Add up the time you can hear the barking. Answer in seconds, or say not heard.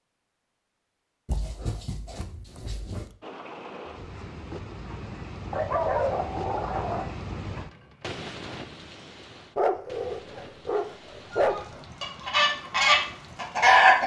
6 s.